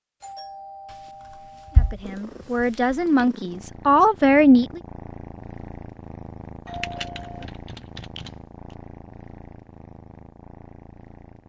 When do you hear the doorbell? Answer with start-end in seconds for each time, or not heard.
0.2-1.9, 6.7-7.5.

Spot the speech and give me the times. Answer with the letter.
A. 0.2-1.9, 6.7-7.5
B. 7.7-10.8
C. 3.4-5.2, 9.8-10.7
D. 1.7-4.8
D.